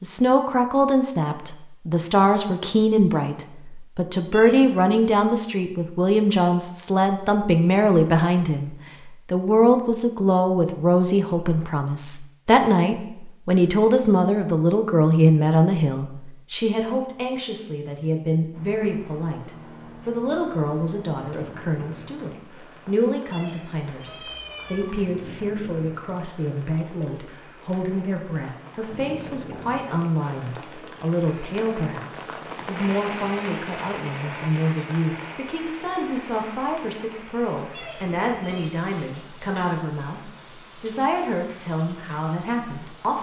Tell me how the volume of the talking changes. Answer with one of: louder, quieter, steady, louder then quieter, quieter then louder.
quieter.